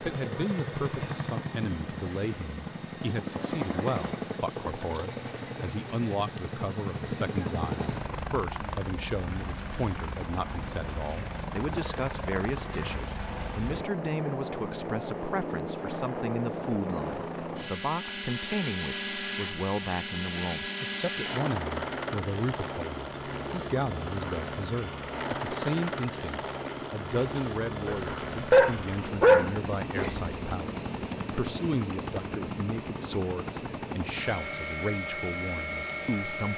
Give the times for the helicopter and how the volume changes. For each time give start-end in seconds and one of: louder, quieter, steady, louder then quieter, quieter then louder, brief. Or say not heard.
0.0-36.5 steady.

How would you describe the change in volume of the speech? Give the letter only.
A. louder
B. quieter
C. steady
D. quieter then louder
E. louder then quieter
C.